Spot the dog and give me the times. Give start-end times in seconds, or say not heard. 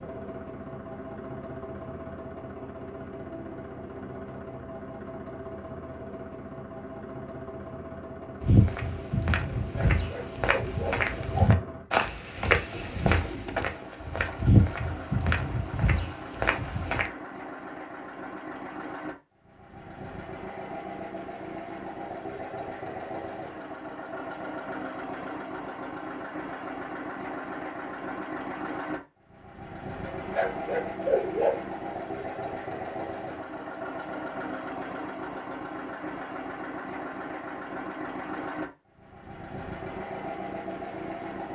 9.7-11.6, 30.1-31.6.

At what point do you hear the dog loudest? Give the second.
31 s.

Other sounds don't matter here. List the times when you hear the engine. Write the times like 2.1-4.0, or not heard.
0.0-41.5.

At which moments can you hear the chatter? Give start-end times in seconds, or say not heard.
not heard.